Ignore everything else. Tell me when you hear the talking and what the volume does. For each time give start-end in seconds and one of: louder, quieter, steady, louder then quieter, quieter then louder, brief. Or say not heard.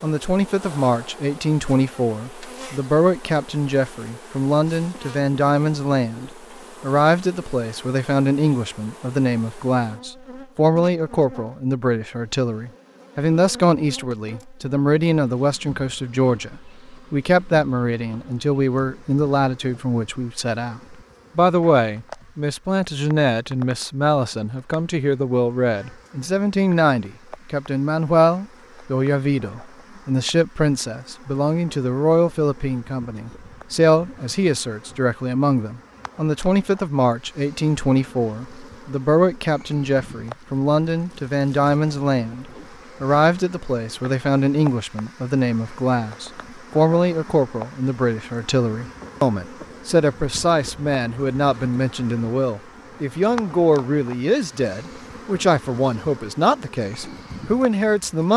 0.0-58.3 steady.